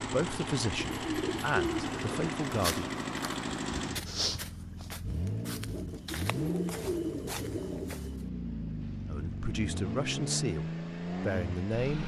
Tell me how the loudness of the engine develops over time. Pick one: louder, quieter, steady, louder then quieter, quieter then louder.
steady.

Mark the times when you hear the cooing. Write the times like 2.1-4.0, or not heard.
0.8-2.2, 6.1-7.7.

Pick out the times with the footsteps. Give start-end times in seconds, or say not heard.
2.5-8.1.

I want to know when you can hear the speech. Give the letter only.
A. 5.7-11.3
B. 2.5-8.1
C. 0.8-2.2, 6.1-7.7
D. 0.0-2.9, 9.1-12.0
D.